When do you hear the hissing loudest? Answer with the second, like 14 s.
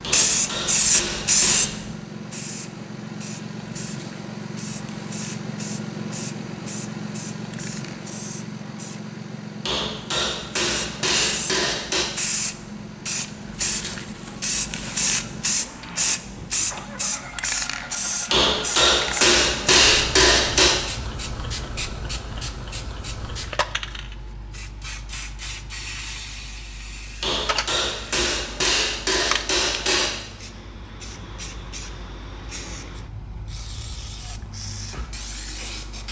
1 s.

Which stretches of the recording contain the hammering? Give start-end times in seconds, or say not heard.
0.0-1.7, 9.7-12.1, 18.3-20.8, 27.2-30.1.